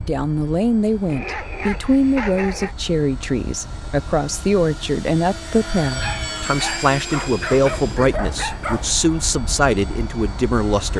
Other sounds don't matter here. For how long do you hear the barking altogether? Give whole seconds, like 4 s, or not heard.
5 s.